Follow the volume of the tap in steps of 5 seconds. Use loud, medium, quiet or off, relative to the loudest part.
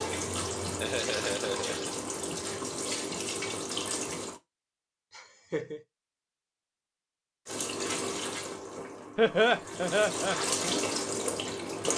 loud, medium, loud.